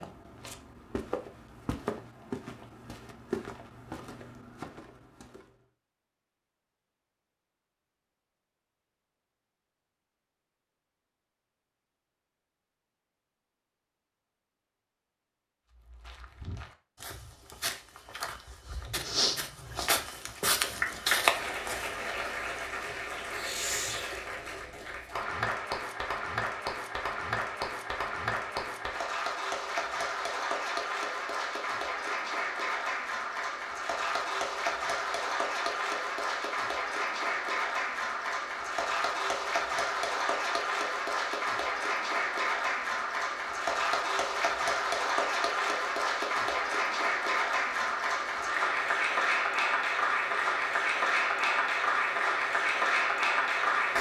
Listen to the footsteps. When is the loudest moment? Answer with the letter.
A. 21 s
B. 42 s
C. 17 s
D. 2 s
A.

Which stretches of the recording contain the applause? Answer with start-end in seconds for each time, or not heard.
20.5-53.9.